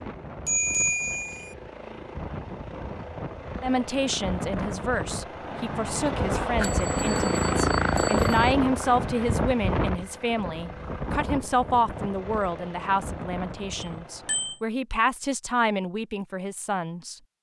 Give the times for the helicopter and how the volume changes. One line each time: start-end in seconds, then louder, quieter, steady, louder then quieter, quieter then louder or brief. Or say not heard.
0.0-14.6 louder then quieter.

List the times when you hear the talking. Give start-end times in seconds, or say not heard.
3.6-17.1.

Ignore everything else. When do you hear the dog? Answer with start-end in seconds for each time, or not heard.
not heard.